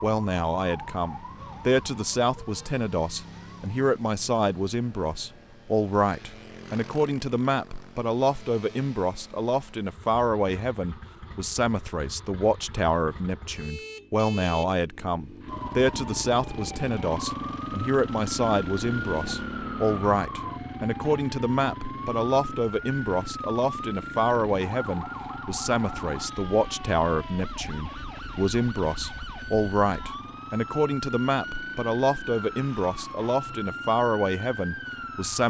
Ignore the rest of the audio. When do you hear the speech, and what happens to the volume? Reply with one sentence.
The speech can be heard from 0.0 to 35.4 s, at a steady volume.